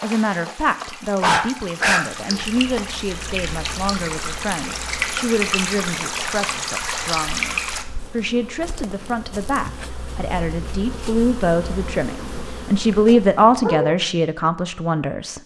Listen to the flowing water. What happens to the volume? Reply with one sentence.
The loudness of the flowing water goes up.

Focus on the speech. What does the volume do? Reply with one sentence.
The volume of the speech goes up.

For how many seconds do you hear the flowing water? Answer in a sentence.
You can hear the flowing water for 8 seconds altogether.